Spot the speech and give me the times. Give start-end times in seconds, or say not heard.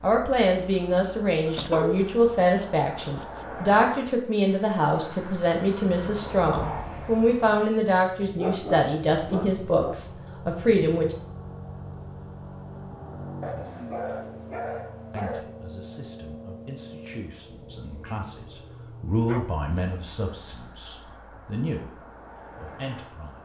0.0-11.2, 15.1-23.4.